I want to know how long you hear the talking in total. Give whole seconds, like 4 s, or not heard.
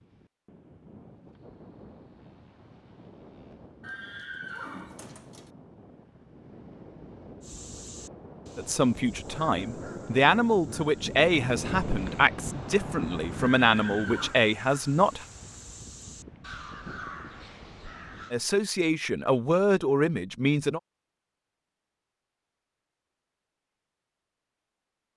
9 s.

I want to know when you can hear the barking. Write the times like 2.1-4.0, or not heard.
not heard.